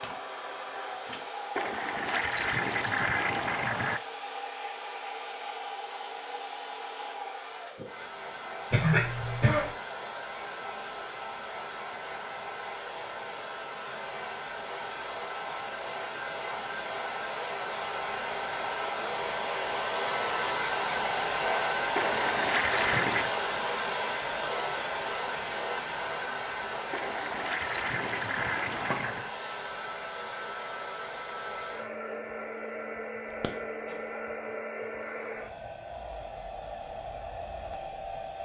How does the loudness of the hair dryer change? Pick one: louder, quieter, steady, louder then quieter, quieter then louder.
louder then quieter.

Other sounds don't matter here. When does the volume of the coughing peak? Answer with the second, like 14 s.
9 s.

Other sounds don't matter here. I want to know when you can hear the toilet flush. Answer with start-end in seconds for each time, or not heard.
1.6-4.0, 21.9-23.3, 26.9-29.3.